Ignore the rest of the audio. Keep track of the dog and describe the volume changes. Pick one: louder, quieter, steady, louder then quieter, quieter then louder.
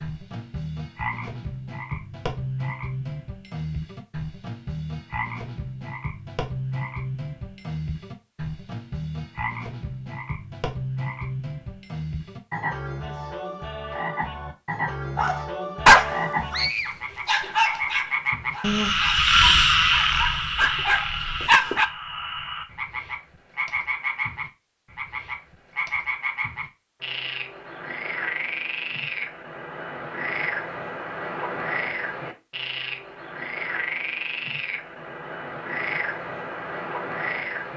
quieter then louder.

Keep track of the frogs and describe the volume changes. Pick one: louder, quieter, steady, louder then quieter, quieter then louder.
louder then quieter.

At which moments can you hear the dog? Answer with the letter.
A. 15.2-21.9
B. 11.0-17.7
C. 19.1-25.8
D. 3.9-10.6
A.